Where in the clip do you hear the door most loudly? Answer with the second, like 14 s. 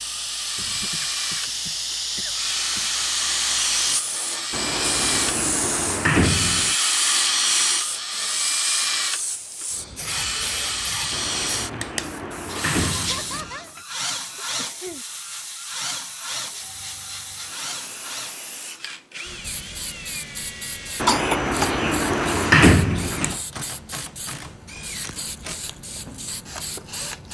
23 s.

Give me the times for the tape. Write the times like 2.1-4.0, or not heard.
not heard.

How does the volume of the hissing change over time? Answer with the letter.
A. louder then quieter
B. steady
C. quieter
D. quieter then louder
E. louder
C.